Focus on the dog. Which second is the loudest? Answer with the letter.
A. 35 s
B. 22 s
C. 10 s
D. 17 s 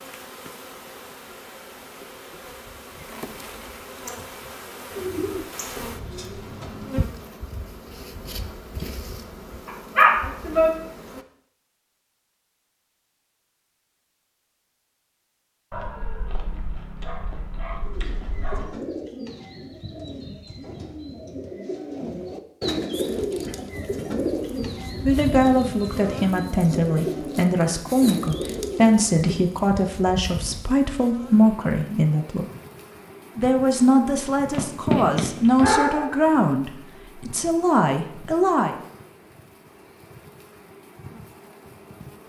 C.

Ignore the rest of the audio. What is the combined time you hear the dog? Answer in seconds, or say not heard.
6 s.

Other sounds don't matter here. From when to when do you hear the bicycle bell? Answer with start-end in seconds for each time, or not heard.
not heard.